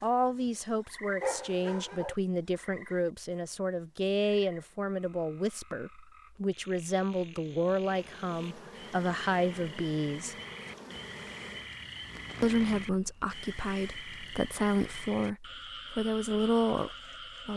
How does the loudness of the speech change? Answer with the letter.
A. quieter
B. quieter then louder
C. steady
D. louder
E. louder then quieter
C.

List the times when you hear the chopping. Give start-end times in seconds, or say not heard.
not heard.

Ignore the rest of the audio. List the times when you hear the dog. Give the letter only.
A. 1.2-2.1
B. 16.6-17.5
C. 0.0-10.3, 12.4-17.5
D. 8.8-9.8
A.